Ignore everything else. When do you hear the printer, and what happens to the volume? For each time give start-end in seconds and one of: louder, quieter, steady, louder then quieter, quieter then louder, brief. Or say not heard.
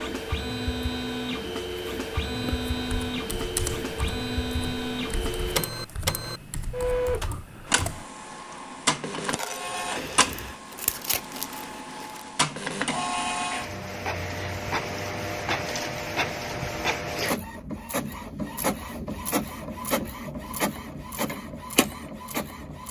0.0-22.8 steady.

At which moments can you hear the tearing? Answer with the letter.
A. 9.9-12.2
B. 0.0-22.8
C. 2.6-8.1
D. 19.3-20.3
A.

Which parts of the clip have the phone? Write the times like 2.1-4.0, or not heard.
9.2-10.2.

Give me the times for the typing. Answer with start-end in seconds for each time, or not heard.
2.6-8.1.